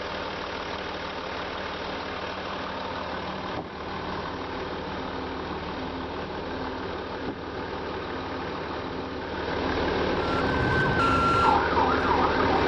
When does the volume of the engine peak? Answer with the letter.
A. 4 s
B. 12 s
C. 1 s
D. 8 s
B.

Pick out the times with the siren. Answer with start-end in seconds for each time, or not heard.
10.2-12.6.